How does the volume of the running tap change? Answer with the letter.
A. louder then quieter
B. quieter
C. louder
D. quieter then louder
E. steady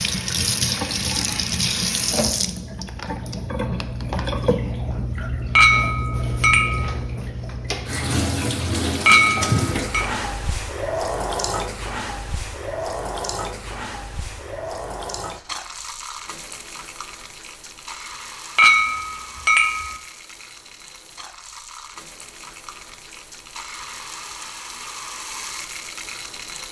B.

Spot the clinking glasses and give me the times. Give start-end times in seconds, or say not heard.
5.5-7.0, 9.1-10.1, 18.6-19.9.